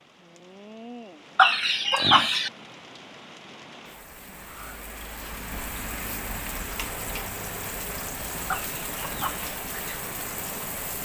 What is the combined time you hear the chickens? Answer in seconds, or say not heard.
2 s.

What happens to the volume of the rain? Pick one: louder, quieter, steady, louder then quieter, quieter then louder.
louder.